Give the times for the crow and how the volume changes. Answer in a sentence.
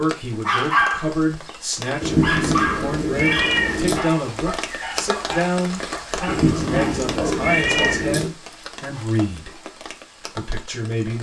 The crow can't be heard in this clip.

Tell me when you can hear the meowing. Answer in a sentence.
The meowing can be heard from 2.0 to 4.0 s and from 6.2 to 8.3 s.